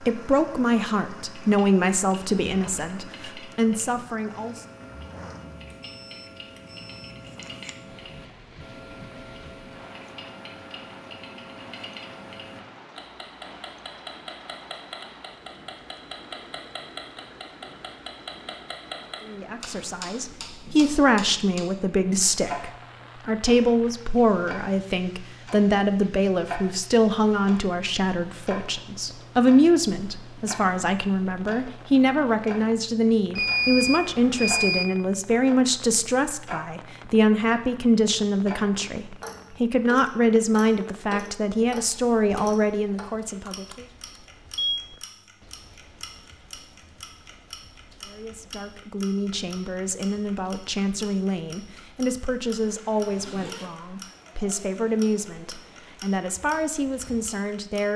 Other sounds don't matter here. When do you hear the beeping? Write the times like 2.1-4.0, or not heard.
5.8-7.7, 33.4-34.9, 43.5-44.9.